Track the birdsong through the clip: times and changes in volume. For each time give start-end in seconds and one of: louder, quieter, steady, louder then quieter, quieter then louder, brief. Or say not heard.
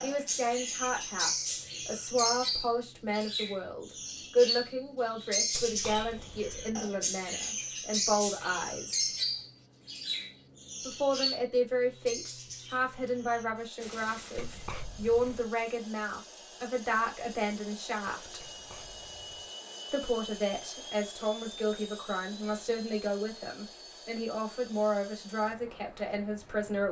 0.0-14.8 quieter.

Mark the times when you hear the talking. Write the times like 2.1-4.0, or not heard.
0.0-9.1, 10.8-18.4, 19.9-26.8.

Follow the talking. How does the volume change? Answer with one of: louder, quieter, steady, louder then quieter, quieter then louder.
steady.